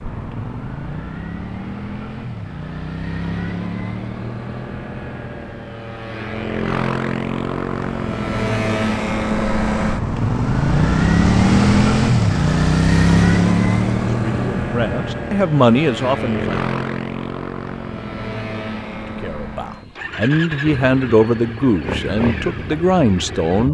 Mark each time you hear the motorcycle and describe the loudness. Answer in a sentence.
You can hear the motorcycle from 0.0 to 23.6 s, getting louder then quieter.